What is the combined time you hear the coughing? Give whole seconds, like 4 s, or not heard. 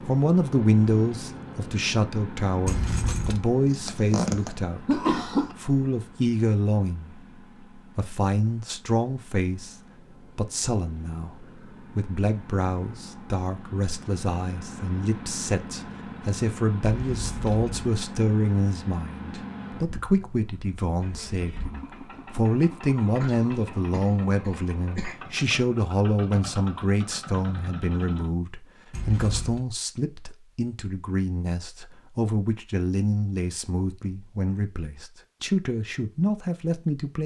4 s.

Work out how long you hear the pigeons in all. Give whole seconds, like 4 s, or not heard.
not heard.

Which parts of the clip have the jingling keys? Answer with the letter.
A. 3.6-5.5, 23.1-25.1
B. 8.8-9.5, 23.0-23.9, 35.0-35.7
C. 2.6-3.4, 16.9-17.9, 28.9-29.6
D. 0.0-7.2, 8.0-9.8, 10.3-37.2
C.